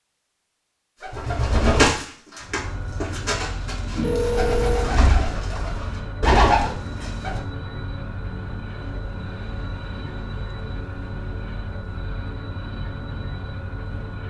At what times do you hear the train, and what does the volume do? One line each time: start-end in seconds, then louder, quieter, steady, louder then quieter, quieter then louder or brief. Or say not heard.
2.4-14.2 steady.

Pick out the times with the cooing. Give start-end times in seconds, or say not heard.
1.0-7.4.